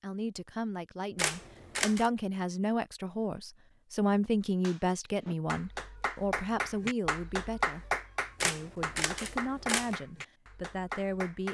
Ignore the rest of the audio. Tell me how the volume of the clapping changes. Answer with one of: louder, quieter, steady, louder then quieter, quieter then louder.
louder then quieter.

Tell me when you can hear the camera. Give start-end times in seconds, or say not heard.
1.1-2.1, 8.4-9.9.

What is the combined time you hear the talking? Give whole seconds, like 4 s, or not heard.
11 s.